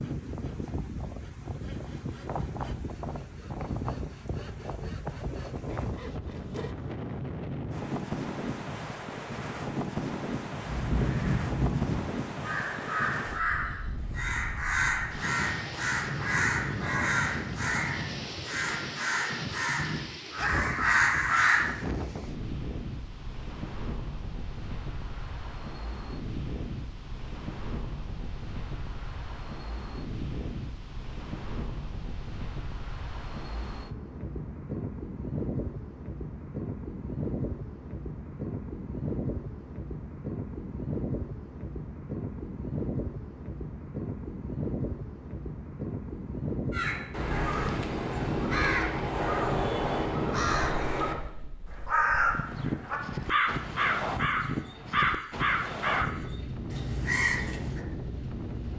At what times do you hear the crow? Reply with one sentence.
The crow can be heard from 10.7 to 21.7 s, from 46.7 to 56.1 s and from 56.7 to 57.8 s.